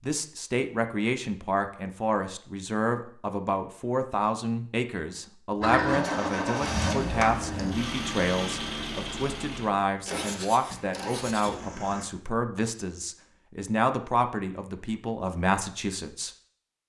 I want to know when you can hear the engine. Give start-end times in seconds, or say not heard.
5.6-12.1.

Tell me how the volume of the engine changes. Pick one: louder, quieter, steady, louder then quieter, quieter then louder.
quieter.